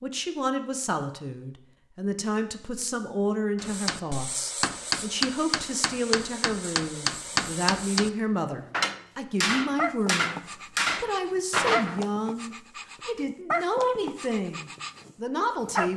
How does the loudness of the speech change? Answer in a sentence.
The loudness of the speech stays about the same.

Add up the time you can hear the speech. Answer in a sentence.
You can hear the speech for 16 seconds altogether.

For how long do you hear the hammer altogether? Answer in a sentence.
You can hear the hammer for 8 seconds altogether.